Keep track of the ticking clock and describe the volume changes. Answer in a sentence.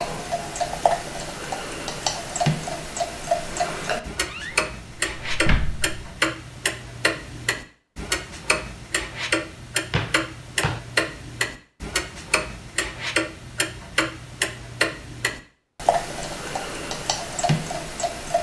The loudness of the ticking clock stays about the same.